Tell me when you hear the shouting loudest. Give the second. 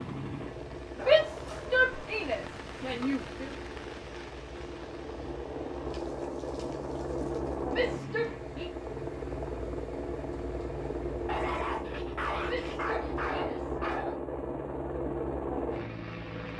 1 s.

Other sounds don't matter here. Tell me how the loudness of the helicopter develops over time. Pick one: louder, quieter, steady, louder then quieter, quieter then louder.
louder.